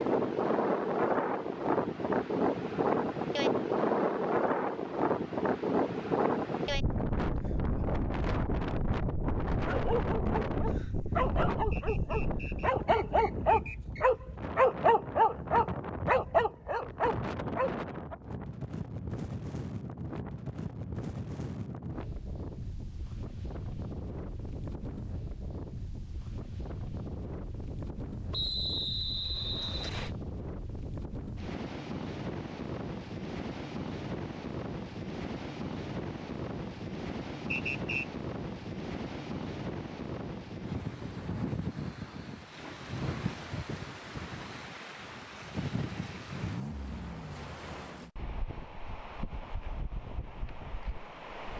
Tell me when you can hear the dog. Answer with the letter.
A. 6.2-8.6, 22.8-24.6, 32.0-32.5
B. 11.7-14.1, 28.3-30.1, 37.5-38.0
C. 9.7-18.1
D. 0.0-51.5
C.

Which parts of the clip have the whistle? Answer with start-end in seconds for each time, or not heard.
11.7-14.1, 28.3-30.1, 37.5-38.0.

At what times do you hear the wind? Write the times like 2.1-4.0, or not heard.
0.0-51.5.